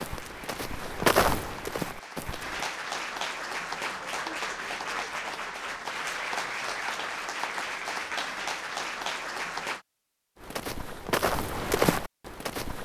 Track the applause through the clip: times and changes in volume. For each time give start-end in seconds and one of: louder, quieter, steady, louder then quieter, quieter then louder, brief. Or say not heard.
0.0-9.8 louder.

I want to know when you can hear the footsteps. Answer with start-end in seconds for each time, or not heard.
0.0-2.7, 10.3-12.8.